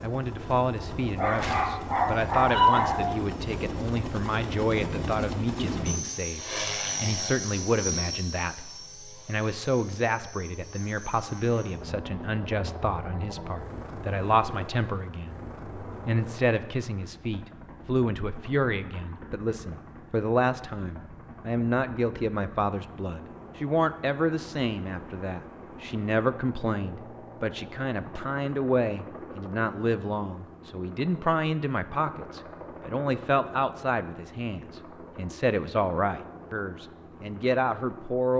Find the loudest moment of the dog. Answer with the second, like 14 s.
3 s.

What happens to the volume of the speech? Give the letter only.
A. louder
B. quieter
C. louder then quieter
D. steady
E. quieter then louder
D.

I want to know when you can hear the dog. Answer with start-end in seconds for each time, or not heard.
1.1-3.1.